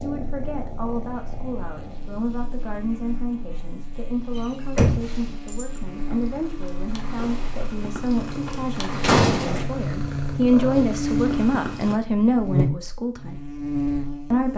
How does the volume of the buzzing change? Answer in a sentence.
The volume of the buzzing goes up.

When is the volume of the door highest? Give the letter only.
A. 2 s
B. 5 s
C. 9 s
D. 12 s
C.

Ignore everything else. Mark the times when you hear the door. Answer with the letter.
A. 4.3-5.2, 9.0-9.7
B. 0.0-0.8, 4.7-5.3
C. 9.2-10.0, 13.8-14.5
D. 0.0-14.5
A.